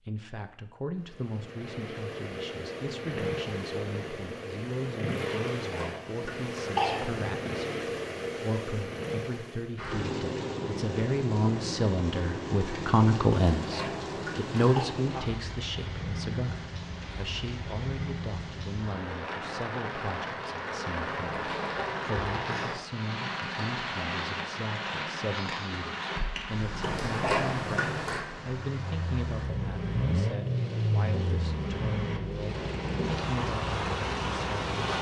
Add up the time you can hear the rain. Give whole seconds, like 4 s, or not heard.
25 s.